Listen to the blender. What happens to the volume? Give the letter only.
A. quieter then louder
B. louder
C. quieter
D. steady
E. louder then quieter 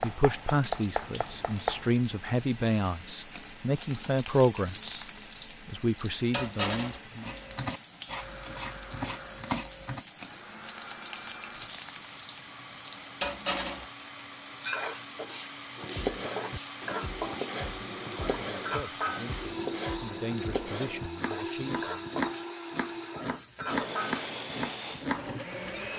B.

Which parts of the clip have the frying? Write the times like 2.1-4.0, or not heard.
0.0-25.9.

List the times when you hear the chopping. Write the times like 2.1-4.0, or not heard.
0.0-1.9, 7.2-10.1, 15.8-25.3.